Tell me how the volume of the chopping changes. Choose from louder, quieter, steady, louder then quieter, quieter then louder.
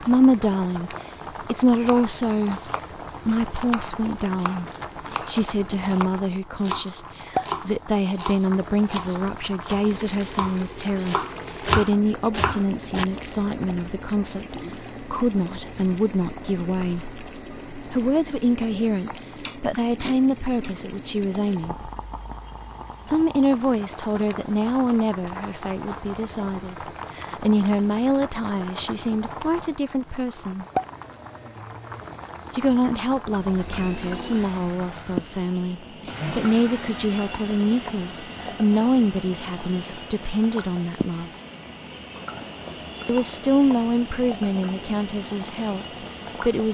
louder.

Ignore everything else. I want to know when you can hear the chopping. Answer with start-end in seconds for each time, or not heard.
1.9-13.1.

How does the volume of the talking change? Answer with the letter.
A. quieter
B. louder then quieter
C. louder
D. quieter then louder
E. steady
E.